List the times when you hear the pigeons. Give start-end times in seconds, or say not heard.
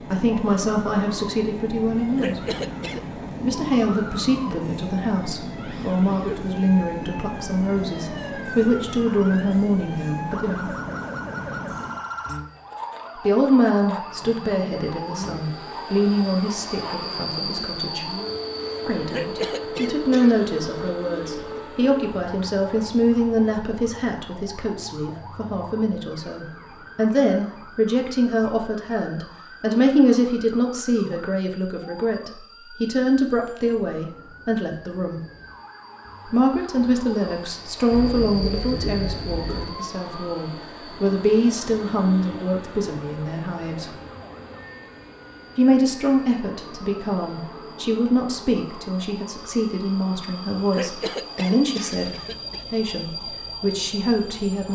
37.9-39.7.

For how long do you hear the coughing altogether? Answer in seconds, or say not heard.
4 s.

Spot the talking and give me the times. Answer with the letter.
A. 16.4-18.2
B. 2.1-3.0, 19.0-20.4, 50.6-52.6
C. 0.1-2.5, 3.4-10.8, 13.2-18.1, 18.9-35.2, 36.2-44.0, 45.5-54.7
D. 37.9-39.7
C.